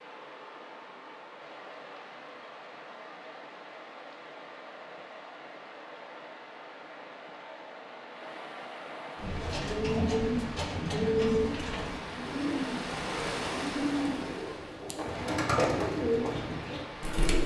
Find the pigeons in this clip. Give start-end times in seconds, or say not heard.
9.2-17.4.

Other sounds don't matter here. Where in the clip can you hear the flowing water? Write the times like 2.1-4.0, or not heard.
0.0-17.4.